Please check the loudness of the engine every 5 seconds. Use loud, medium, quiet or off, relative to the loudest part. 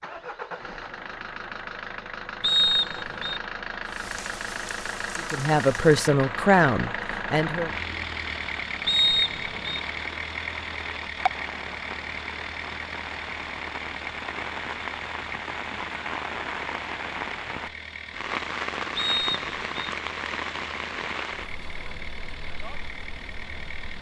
loud, loud, loud, medium, medium.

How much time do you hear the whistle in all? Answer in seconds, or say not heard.
3 s.